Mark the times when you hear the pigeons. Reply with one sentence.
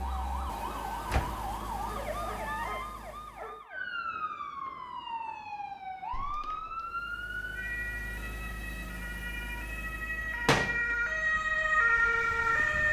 The pigeons can't be heard in this clip.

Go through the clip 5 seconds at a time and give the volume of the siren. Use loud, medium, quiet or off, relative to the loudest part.
medium, medium, loud.